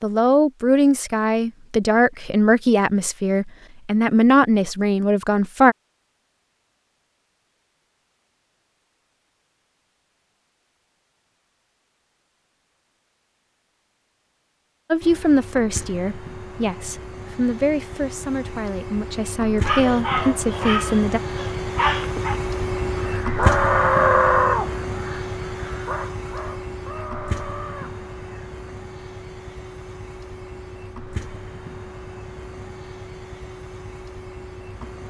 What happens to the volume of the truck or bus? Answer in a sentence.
The loudness of the truck or bus goes up, then down.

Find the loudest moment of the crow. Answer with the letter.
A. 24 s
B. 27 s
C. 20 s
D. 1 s
A.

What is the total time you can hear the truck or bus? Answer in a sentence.
You can hear the truck or bus for 20 seconds altogether.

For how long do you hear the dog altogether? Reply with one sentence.
You can hear the dog for 3 seconds altogether.